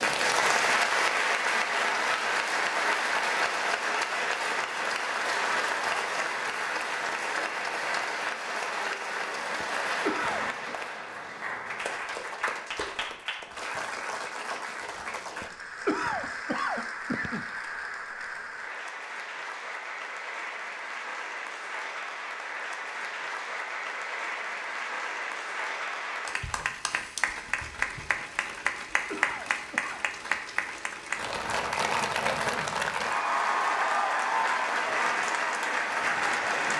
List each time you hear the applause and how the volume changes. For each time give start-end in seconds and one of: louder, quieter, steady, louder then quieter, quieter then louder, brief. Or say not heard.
0.0-36.7 quieter then louder.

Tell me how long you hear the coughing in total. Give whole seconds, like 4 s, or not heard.
4 s.